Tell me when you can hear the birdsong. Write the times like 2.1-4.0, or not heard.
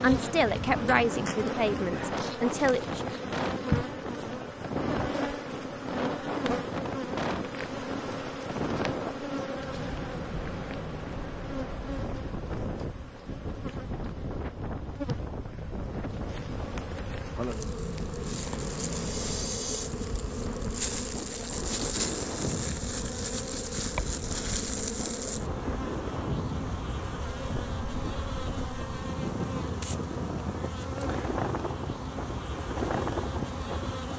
not heard.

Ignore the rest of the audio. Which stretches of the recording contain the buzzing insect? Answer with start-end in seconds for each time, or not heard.
0.0-34.1.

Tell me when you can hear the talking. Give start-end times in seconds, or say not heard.
0.0-3.0.